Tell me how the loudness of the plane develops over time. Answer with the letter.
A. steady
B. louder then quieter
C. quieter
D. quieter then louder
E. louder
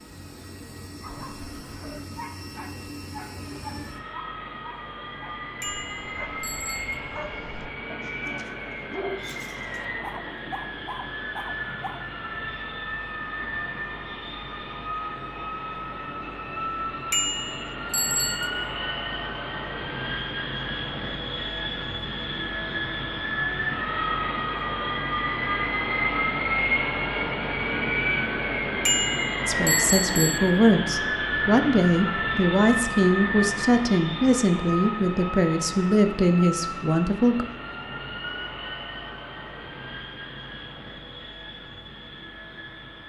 B.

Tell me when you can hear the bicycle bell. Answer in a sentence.
The bicycle bell can be heard from 5.6 to 7.0 s, from 17.1 to 18.5 s and from 28.9 to 30.4 s.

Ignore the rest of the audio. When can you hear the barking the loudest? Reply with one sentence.
The volume of the barking peaks at 9 seconds.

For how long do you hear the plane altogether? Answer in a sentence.
You can hear the plane for 43 seconds altogether.